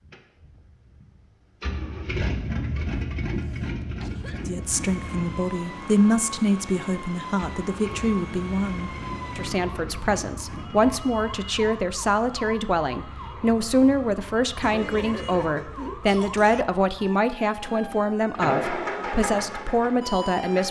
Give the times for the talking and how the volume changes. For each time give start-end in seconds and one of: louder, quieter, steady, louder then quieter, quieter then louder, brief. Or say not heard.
4.5-20.6 steady.